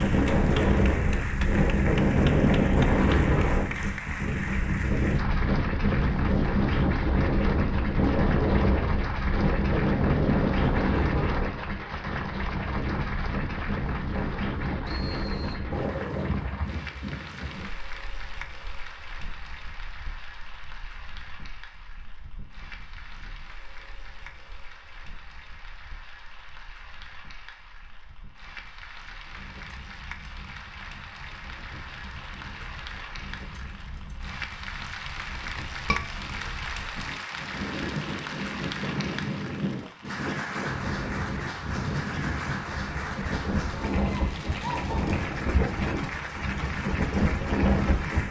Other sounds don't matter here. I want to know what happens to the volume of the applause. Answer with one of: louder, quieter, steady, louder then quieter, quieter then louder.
quieter then louder.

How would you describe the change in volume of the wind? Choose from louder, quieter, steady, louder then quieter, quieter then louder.
quieter then louder.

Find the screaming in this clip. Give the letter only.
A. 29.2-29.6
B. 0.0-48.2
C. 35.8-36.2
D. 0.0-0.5
C.